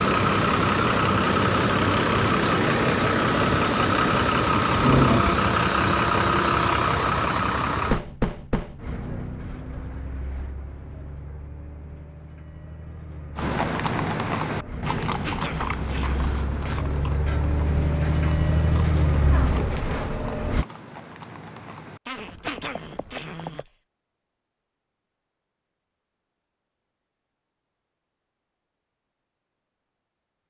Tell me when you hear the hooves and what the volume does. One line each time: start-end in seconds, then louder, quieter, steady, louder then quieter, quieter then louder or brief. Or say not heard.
13.3-23.6 quieter.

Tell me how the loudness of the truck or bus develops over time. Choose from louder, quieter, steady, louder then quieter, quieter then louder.
quieter then louder.